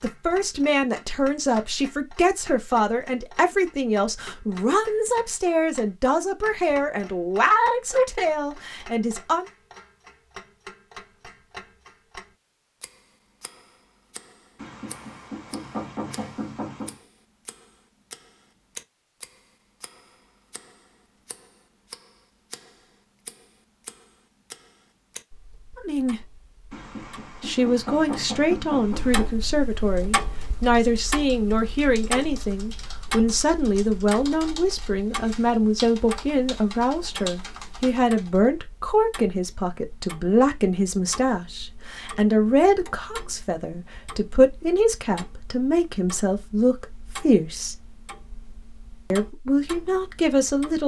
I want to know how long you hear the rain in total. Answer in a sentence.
The rain can't be heard in this clip.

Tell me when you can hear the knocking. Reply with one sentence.
You can hear the knocking from 14.6 to 17.0 s and from 26.7 to 29.4 s.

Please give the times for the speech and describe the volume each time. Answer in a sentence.
The speech can be heard from 0.0 to 9.5 s, at a steady volume; briefly from 25.8 to 26.2 s; from 27.4 to 47.8 s, at a steady volume; and briefly from 49.1 to 50.8 s.